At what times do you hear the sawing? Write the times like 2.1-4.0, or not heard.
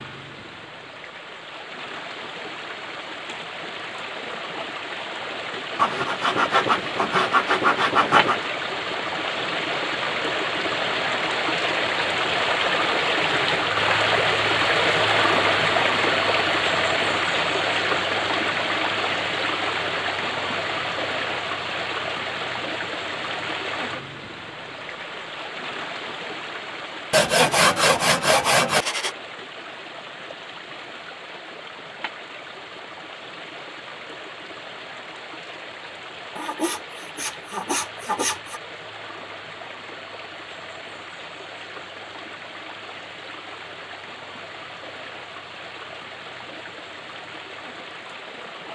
5.8-8.5, 27.1-29.1, 36.4-38.6.